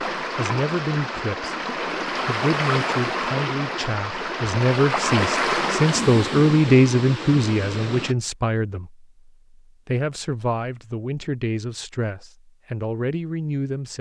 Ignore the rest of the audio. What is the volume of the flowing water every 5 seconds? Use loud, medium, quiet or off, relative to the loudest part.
loud, loud, off.